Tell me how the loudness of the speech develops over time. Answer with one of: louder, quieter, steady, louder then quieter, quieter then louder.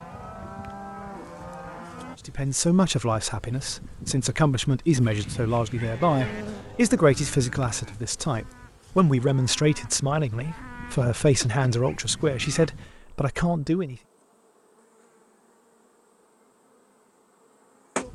steady.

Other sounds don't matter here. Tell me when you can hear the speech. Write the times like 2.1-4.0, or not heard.
2.2-14.0.